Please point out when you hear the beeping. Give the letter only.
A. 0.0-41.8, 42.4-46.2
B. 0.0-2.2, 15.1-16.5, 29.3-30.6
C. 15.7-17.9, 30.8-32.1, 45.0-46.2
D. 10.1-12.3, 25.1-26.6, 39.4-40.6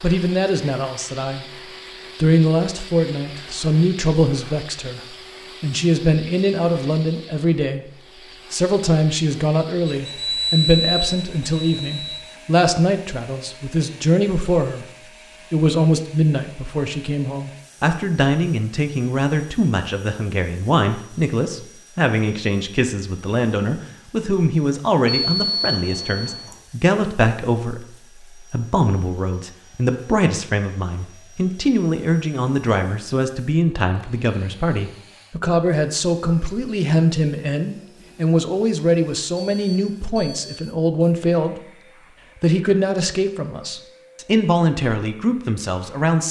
D.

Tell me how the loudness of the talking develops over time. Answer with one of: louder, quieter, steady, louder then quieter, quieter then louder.
steady.